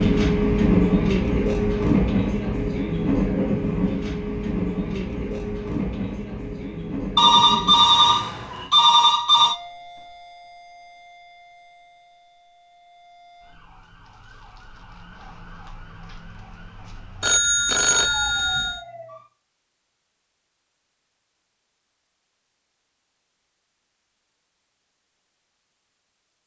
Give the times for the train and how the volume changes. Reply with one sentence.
You can hear the train from 0.0 to 8.7 s, getting quieter.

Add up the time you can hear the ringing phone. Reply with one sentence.
The ringing phone can be heard for 4 seconds in total.